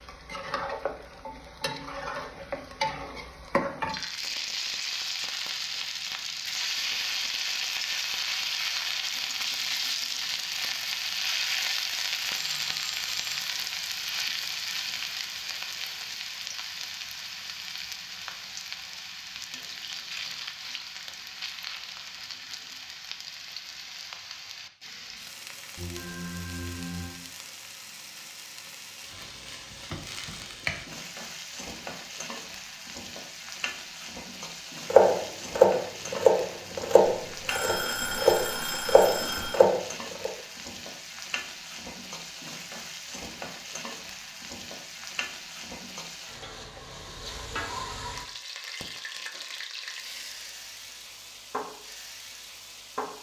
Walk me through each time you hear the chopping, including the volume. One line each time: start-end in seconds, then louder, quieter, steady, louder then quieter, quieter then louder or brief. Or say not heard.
34.9-40.3 quieter then louder.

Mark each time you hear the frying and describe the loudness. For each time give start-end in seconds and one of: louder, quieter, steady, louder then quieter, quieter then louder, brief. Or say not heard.
0.0-53.1 quieter.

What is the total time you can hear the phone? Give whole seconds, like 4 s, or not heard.
5 s.